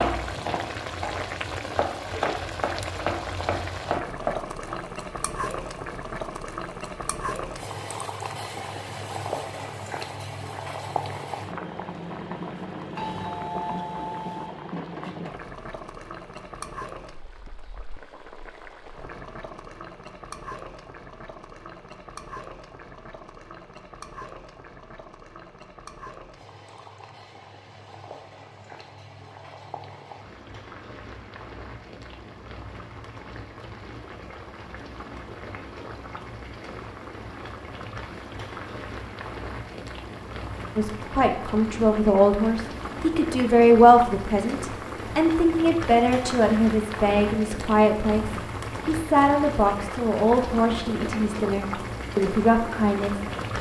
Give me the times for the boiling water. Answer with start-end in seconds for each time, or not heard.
0.0-53.5.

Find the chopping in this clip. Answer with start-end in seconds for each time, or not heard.
0.0-4.8.